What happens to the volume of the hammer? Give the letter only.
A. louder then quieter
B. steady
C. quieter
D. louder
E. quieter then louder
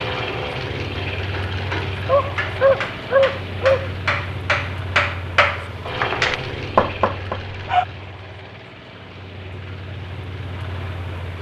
D.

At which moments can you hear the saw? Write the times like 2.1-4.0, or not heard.
not heard.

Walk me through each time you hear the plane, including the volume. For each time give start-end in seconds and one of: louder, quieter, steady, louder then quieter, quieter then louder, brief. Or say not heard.
0.0-11.3 quieter.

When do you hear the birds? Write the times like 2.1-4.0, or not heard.
not heard.